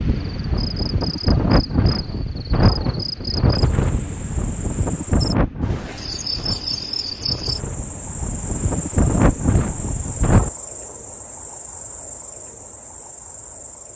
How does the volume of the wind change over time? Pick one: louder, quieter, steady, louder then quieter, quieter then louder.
quieter then louder.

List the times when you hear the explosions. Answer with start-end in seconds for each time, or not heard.
not heard.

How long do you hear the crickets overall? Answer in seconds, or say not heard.
14 s.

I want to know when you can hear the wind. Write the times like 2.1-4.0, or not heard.
0.0-10.5.